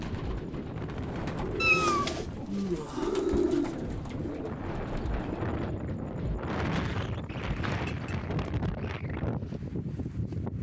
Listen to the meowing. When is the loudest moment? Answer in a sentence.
The volume of the meowing peaks at 2 seconds.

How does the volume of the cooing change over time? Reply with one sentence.
The loudness of the cooing goes up, then down.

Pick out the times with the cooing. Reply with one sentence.
The cooing can be heard from 0.0 to 6.4 s.